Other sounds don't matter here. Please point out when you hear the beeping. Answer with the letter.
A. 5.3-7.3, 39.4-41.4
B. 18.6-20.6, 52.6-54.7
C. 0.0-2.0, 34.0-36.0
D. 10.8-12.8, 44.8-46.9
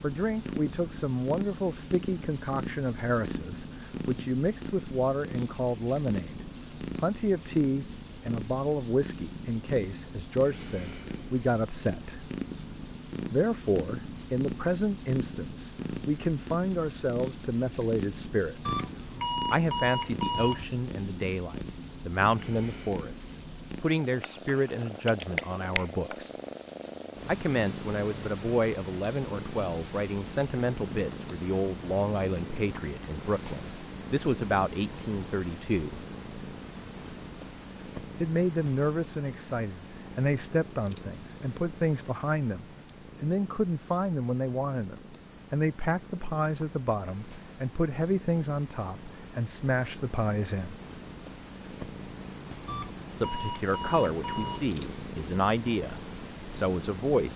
B.